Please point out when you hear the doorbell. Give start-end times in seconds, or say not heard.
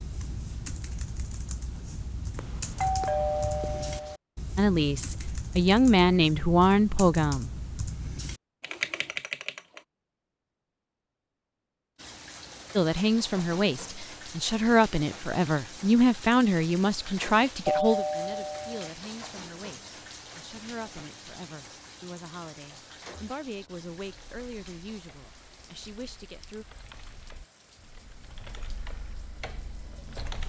2.4-4.2, 17.6-18.9.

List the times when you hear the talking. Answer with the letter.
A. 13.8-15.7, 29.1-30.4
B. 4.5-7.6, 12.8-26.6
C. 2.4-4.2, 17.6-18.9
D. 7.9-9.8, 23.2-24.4
B.